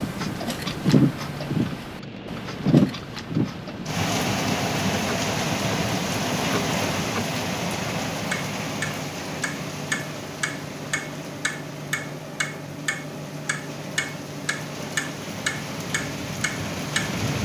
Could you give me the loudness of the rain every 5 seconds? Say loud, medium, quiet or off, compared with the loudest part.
loud, loud, quiet, medium.